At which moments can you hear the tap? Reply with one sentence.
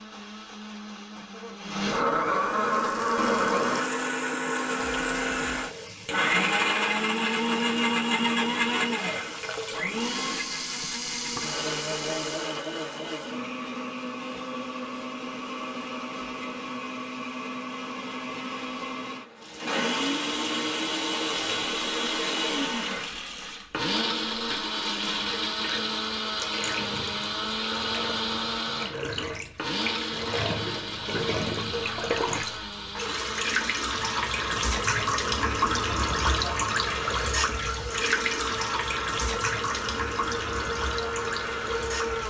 You can hear the tap from 2.7 to 12.6 s and from 19.4 to 42.2 s.